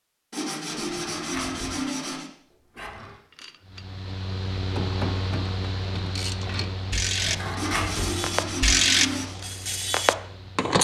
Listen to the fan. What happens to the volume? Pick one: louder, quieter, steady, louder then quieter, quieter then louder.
quieter.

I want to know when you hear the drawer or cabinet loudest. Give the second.
8 s.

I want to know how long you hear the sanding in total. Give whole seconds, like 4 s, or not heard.
4 s.